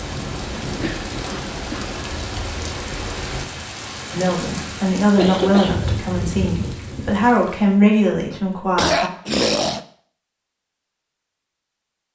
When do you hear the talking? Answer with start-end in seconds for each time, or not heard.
4.1-9.1.